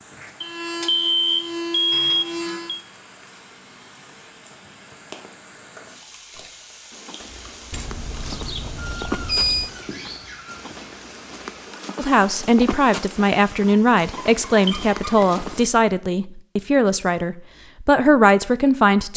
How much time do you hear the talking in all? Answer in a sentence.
The talking can be heard for 7 seconds in total.